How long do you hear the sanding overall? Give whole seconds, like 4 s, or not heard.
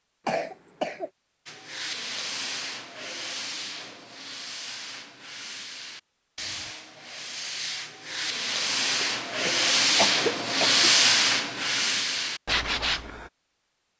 12 s.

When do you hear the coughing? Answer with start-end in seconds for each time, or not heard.
0.2-1.1, 9.0-10.8.